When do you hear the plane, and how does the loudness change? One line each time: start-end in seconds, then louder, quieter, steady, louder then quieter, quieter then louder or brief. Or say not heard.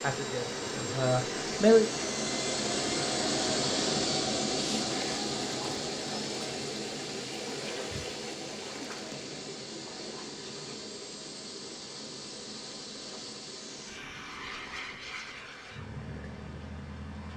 0.0-17.3 quieter.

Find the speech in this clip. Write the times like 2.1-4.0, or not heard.
0.0-1.9.